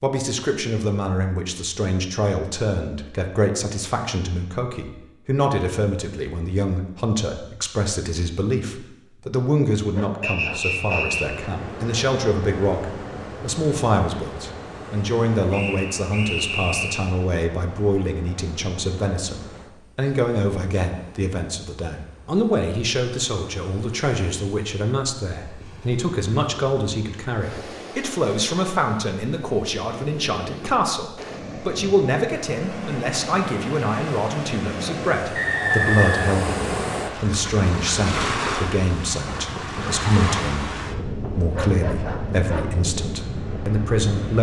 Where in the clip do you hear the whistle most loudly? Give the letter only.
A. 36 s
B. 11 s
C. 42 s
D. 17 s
A.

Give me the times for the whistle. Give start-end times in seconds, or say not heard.
10.2-11.2, 15.5-17.1, 35.4-37.1.